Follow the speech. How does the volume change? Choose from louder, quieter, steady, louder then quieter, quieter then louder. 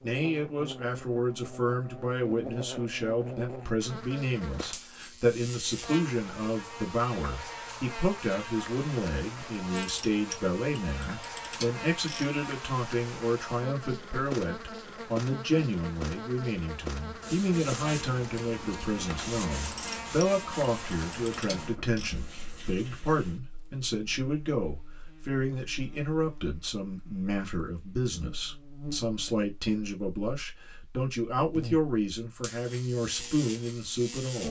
steady.